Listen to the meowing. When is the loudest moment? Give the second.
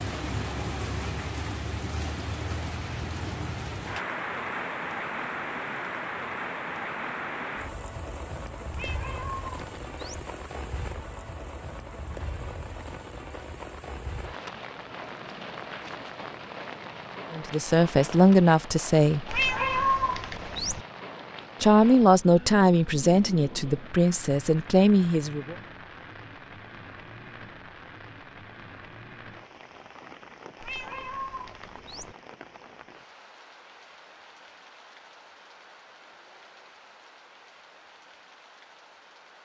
20 s.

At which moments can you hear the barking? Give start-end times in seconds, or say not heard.
not heard.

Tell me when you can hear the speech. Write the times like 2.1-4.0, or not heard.
17.3-19.2, 21.6-25.6.